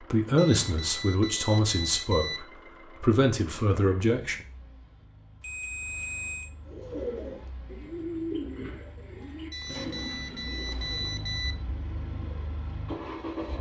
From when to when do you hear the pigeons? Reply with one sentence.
You can hear the pigeons from 6.7 to 12.6 s.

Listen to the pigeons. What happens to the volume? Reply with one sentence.
The loudness of the pigeons goes down.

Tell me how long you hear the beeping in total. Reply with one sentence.
The beeping can be heard for 5 seconds in total.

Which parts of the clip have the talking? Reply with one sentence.
You can hear the talking from 0.0 to 4.3 s.